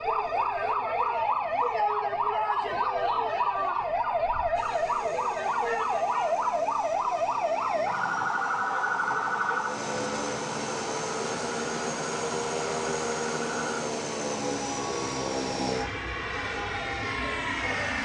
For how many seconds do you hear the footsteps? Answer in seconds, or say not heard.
not heard.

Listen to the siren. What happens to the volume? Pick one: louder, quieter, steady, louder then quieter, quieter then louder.
quieter.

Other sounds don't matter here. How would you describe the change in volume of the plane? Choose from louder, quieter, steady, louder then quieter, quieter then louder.
louder.